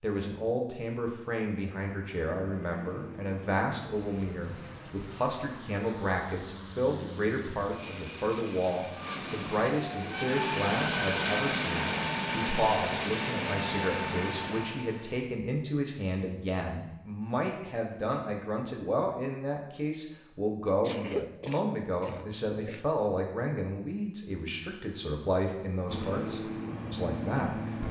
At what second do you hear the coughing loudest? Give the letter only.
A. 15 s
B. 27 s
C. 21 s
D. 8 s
C.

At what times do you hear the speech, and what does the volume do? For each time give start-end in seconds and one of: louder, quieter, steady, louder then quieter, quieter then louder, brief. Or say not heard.
0.0-27.8 steady.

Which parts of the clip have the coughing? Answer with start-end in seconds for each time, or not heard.
20.8-22.9.